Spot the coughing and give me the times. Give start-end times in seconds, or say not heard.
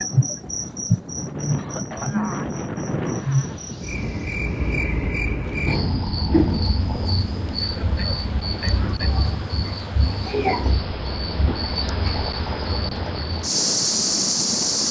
1.6-3.6, 7.6-9.2.